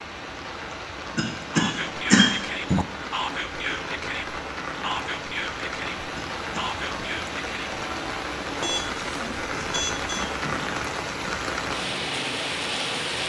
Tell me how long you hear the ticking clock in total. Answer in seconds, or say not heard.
not heard.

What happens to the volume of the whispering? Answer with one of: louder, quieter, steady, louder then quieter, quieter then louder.
steady.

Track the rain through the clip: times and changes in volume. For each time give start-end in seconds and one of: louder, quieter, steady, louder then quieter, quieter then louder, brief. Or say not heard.
0.0-13.2 louder.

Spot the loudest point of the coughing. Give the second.
2 s.